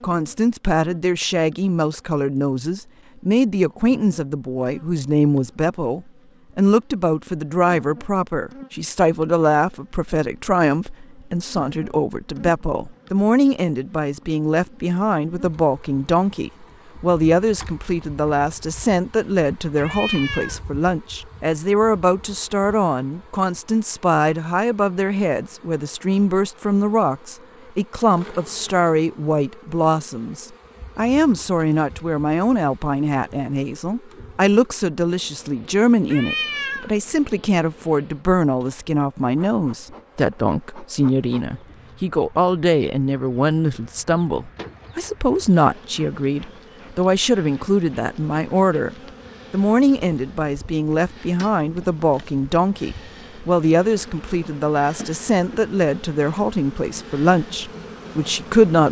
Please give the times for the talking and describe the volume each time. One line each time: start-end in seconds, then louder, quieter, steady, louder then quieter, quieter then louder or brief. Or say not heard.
0.0-58.8 steady.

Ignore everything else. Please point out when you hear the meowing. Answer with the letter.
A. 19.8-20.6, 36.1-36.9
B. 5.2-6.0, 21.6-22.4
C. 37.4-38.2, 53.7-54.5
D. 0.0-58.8
A.